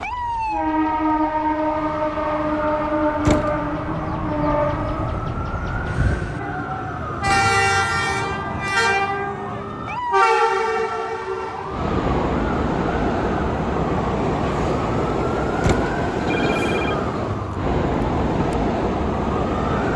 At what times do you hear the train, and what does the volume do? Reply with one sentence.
The train can be heard from 0.0 to 19.9 s, at a steady volume.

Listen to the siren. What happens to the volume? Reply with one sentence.
The loudness of the siren stays about the same.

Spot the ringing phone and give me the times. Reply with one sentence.
You can hear the ringing phone from 16.3 to 17.0 s.